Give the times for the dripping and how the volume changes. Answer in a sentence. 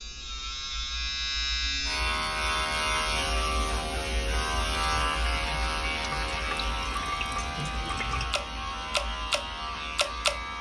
You can hear the dripping from 4.8 to 10.4 s, getting louder.